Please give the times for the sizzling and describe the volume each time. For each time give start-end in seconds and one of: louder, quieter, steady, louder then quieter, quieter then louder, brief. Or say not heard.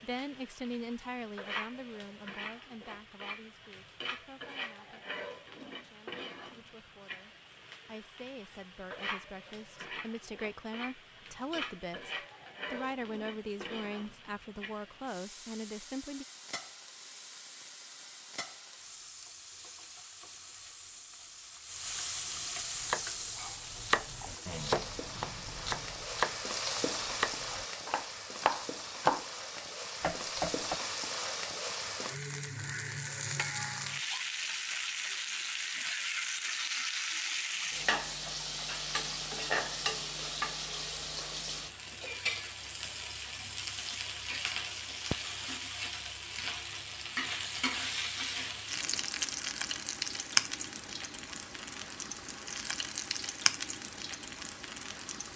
0.0-55.3 louder.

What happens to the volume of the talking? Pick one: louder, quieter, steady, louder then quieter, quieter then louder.
quieter then louder.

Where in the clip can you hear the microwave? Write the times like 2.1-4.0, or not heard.
not heard.